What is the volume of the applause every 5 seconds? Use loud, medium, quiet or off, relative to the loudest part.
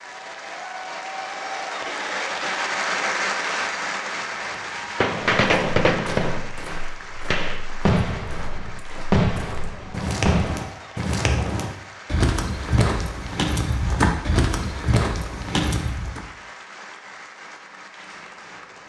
loud, medium, quiet, quiet.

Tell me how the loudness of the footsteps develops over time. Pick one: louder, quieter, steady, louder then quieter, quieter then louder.
louder.